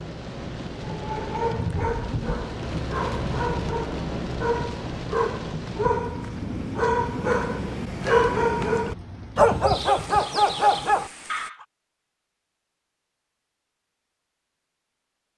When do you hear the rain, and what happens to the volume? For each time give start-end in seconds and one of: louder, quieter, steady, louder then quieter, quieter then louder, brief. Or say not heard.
0.0-11.5 quieter.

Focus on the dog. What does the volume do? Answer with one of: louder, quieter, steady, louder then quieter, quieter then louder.
louder.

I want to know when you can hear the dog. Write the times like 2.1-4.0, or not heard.
0.8-11.6.